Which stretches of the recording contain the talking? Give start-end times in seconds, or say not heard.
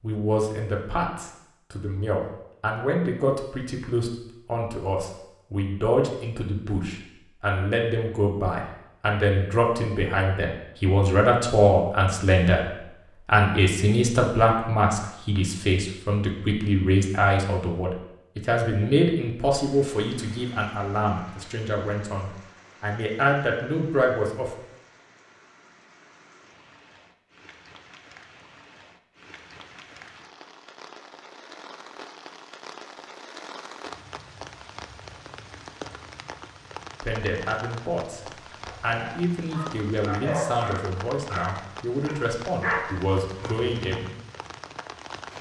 0.0-24.5, 37.0-38.2, 38.8-44.0.